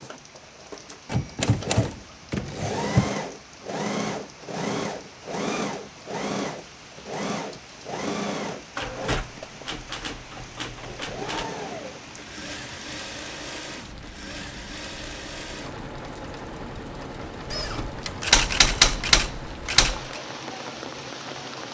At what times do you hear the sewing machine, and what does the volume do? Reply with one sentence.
The sewing machine can be heard from 0.0 to 21.7 s, getting quieter.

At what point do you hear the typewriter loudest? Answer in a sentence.
The volume of the typewriter peaks at 19 seconds.